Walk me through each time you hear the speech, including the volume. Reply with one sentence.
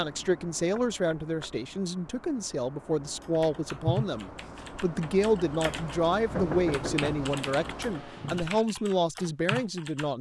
You can hear the speech from 0.0 to 10.1 s, at a steady volume.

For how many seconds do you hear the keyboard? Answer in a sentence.
The keyboard can be heard for 7 seconds in total.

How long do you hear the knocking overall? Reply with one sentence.
You can hear the knocking for 2 seconds altogether.